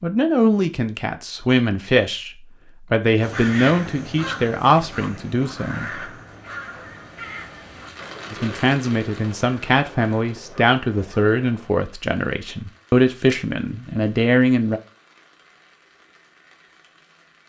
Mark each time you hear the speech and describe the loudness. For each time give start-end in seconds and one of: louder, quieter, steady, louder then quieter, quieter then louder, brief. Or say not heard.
0.0-6.0 steady
8.3-14.8 steady.